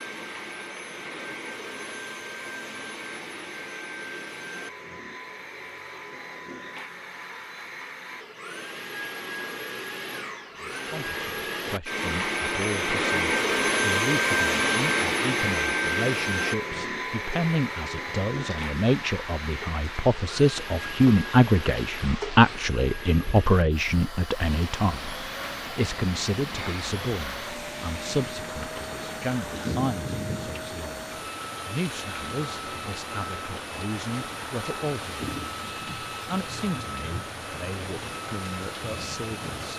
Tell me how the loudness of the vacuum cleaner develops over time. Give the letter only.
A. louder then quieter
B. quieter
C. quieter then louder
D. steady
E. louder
A.